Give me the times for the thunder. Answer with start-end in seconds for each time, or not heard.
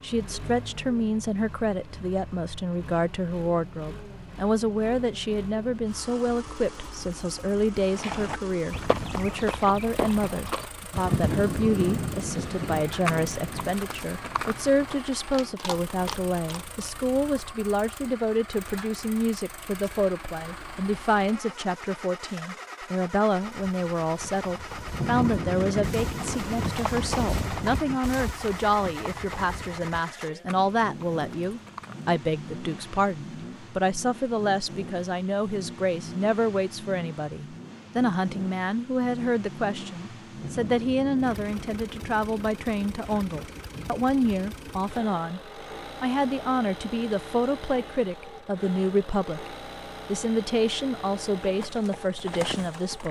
11.0-13.8, 24.9-28.0, 40.4-44.5.